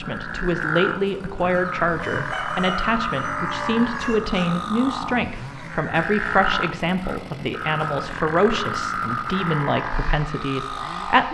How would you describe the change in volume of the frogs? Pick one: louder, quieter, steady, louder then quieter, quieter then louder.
steady.